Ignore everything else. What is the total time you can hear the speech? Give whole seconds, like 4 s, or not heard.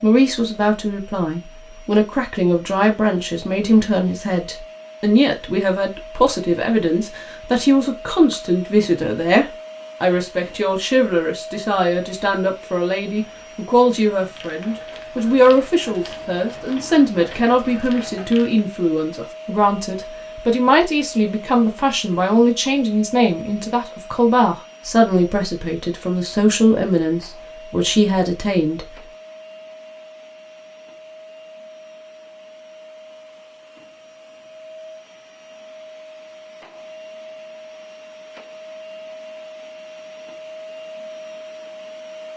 29 s.